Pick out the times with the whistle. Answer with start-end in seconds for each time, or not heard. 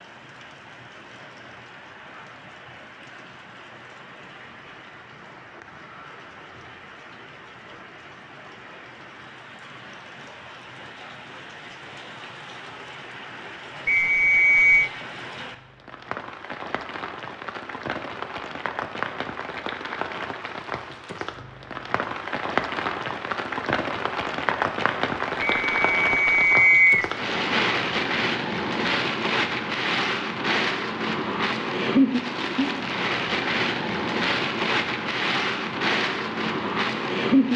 13.8-14.9, 25.4-27.1.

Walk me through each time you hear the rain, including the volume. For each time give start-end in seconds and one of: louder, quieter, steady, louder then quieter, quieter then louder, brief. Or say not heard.
0.0-37.5 louder.